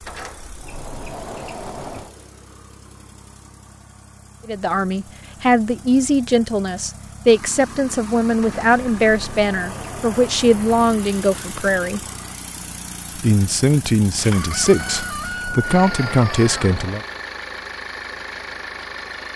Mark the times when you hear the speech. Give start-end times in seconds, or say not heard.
4.5-12.0, 13.2-17.0.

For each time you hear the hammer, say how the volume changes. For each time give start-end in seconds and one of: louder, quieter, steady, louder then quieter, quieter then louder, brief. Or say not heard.
not heard.